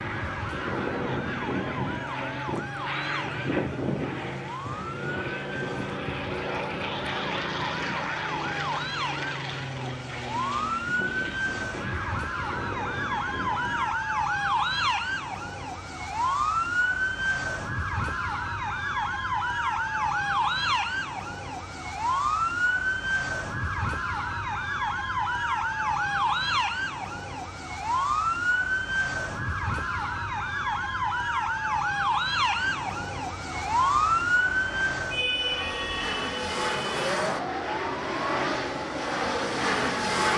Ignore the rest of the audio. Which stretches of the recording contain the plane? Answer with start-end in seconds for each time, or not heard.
0.0-13.9, 33.8-40.3.